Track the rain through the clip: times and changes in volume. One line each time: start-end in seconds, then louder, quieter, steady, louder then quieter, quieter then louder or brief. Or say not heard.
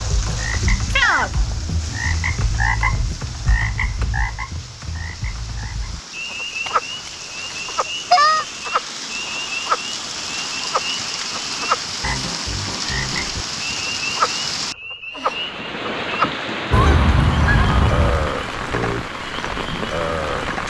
0.0-20.6 louder.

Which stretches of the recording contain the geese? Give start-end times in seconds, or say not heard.
6.7-8.4, 16.7-18.3.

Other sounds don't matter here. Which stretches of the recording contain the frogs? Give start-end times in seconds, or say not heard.
0.0-20.6.